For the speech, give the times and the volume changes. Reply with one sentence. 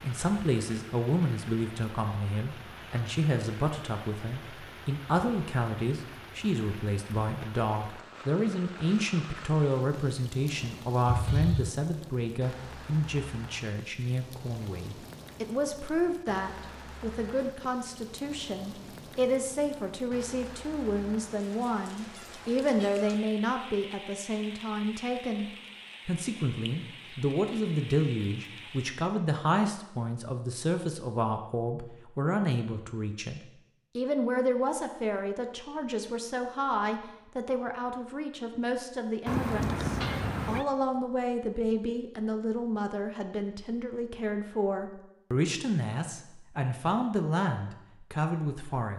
You can hear the speech from 0.0 to 48.9 s, at a steady volume.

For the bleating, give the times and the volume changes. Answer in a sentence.
You can't hear the bleating here.